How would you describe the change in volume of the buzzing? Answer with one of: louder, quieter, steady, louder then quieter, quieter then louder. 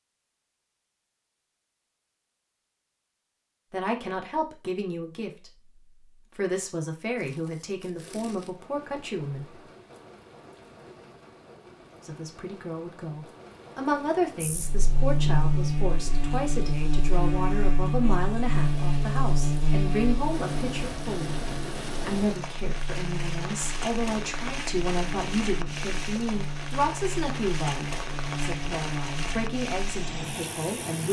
quieter.